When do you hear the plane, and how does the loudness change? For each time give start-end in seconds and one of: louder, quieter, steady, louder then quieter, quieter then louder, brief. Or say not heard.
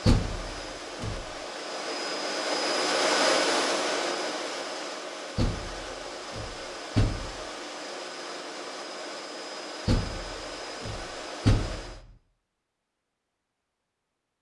0.0-12.1 louder then quieter.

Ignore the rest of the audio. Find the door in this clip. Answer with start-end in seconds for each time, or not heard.
0.1-1.2, 5.3-7.4, 9.8-12.0.